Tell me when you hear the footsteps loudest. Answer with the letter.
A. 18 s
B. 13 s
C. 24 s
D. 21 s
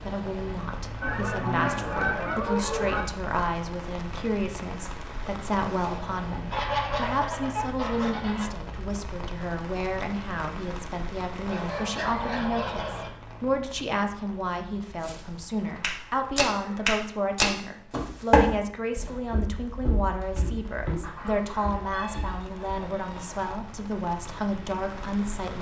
A.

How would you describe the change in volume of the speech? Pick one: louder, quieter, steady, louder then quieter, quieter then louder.
steady.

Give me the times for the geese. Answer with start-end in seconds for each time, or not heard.
1.0-3.0, 6.5-8.5, 11.4-13.1, 15.6-16.9, 21.0-23.4.